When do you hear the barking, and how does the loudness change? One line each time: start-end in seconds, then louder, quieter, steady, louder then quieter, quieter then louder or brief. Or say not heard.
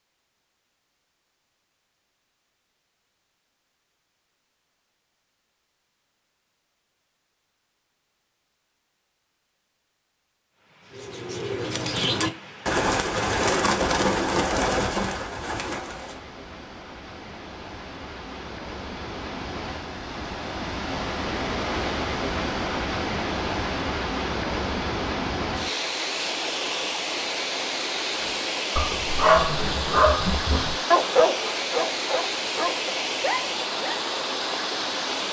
28.2-34.0 quieter.